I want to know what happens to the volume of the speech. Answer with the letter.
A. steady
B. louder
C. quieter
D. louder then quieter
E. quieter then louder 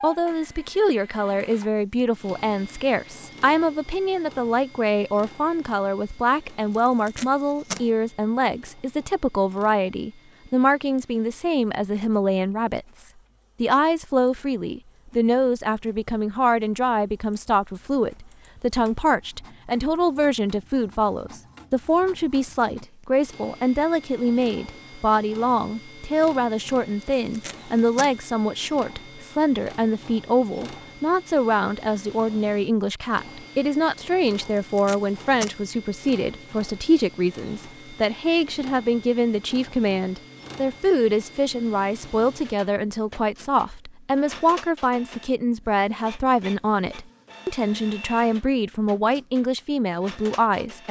A.